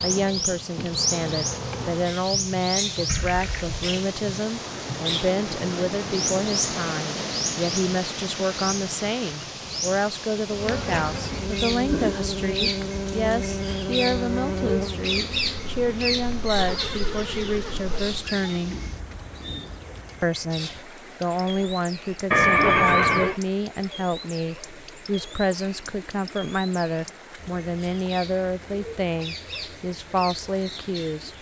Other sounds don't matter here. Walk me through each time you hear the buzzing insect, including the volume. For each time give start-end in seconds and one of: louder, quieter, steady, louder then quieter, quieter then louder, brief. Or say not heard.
0.0-2.2 brief
10.4-18.2 quieter.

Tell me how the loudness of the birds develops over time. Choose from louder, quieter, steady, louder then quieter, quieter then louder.
quieter.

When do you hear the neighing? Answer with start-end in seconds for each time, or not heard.
3.0-3.8, 16.6-18.6, 22.3-23.4.